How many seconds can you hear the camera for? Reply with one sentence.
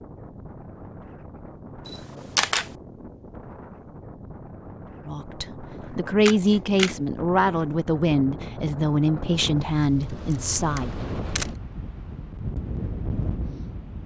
You can hear the camera for 3 seconds altogether.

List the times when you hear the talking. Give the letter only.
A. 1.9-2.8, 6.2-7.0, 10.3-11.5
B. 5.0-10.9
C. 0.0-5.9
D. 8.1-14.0
B.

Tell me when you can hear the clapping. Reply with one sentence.
The clapping can't be heard in this clip.